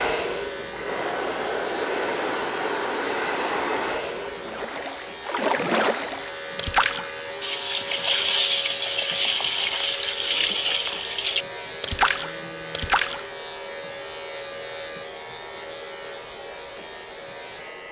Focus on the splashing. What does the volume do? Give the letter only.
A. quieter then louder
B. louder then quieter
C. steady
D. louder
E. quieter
C.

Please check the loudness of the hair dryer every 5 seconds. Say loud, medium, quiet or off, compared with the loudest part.
loud, quiet, quiet, quiet.